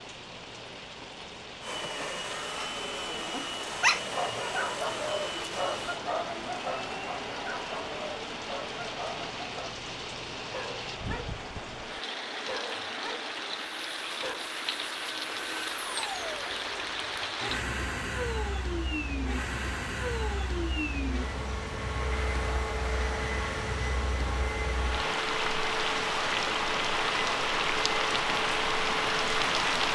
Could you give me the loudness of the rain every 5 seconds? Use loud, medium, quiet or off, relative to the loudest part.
quiet, medium, medium, medium, medium, loud.